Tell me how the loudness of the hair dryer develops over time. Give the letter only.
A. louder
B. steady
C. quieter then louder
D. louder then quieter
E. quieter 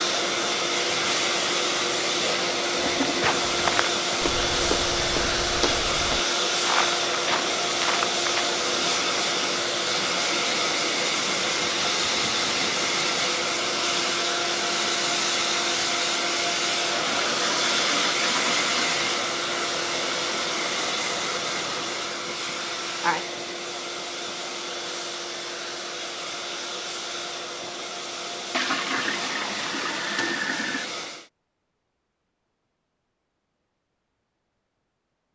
E.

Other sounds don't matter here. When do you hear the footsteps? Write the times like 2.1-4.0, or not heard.
2.9-8.4.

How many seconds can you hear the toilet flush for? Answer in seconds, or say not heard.
5 s.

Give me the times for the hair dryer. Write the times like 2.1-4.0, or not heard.
0.0-31.3.